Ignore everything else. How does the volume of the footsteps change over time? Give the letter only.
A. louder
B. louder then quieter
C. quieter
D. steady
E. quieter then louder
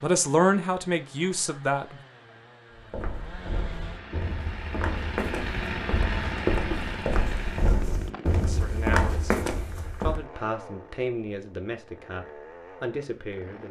A.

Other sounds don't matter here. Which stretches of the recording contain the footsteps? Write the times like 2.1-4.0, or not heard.
2.8-10.2.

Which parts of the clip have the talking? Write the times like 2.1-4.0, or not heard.
0.0-2.0, 8.3-9.3, 10.0-13.6.